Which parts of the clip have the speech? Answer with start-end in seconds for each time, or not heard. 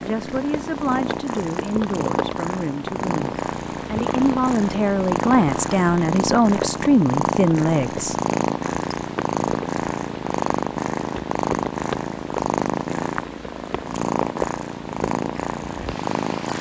0.0-8.2.